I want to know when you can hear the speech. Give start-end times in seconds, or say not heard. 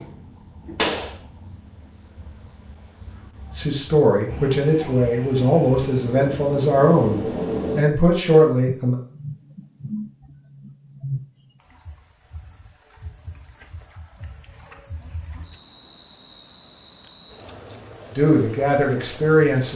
3.5-8.9, 18.1-19.7.